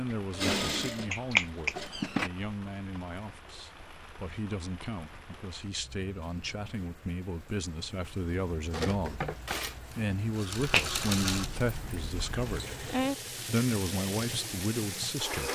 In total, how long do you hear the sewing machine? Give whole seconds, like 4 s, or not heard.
9 s.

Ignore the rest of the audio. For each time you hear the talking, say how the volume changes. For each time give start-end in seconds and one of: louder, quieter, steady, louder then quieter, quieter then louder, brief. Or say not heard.
0.0-15.5 louder.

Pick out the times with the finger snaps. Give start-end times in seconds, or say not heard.
1.1-1.8, 10.6-12.6.